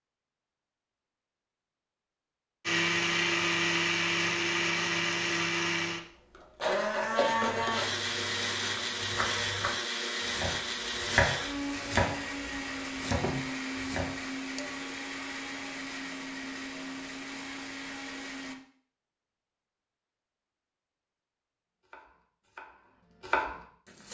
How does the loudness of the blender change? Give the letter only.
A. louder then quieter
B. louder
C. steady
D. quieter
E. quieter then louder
D.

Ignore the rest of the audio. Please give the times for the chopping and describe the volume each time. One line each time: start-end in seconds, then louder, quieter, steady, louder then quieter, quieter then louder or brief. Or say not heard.
8.8-14.1 louder then quieter
21.9-24.1 brief.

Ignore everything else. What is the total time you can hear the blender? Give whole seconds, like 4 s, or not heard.
16 s.